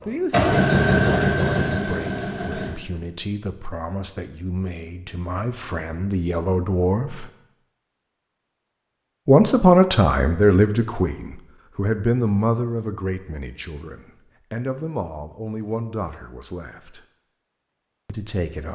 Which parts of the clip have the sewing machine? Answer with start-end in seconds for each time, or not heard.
0.0-2.7.